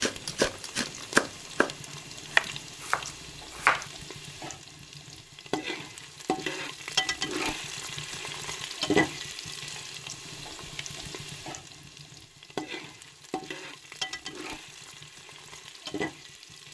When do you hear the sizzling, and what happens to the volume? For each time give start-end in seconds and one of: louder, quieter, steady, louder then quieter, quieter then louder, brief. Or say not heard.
0.0-16.6 louder then quieter.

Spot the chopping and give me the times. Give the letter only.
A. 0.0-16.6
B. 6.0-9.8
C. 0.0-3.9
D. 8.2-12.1
C.